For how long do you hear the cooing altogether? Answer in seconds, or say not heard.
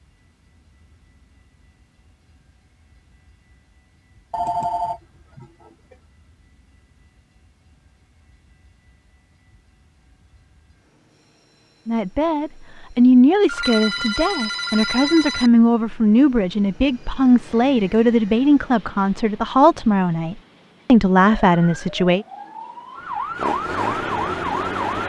not heard.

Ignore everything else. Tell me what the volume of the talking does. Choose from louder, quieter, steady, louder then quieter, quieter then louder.
steady.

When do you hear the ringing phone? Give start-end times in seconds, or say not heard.
4.3-6.0, 13.4-15.5.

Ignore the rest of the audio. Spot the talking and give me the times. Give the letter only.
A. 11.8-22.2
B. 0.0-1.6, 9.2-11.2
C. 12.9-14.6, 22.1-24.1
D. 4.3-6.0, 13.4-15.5
A.